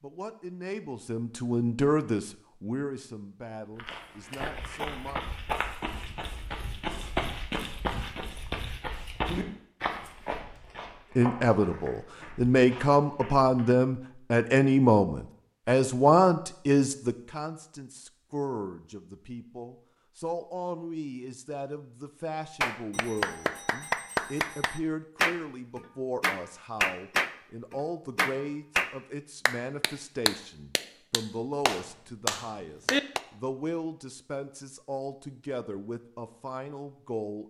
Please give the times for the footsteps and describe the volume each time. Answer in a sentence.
You can hear the footsteps from 3.8 to 13.7 s, getting quieter.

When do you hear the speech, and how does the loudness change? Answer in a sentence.
You can hear the speech from 0.0 to 5.2 s, getting louder then quieter; and from 11.2 to 37.4 s, getting quieter.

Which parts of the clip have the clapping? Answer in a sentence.
The clapping can be heard from 22.6 to 33.2 s.